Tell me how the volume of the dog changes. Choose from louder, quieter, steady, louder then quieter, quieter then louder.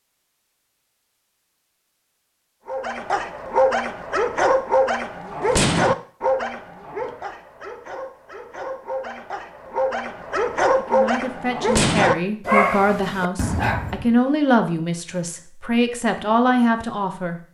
quieter then louder.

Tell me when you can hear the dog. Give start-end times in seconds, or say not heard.
2.6-14.1.